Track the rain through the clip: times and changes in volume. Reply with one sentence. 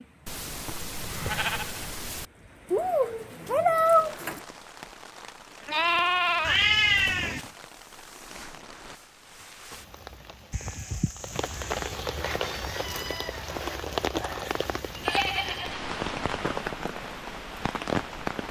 The rain can be heard from 0.0 to 18.4 s, getting louder.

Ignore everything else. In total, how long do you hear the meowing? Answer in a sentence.
You can hear the meowing for 4 seconds altogether.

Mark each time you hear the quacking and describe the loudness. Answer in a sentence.
The quacking can't be heard in this clip.